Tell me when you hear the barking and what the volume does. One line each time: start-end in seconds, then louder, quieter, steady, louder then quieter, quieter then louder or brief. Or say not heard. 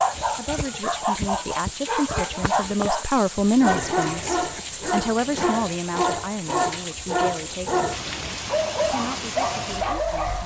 0.0-10.4 steady.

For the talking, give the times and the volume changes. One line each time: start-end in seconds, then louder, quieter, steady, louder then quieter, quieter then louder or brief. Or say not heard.
0.3-10.4 louder then quieter.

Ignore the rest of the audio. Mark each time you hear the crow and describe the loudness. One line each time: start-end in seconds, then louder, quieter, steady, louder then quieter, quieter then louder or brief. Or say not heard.
not heard.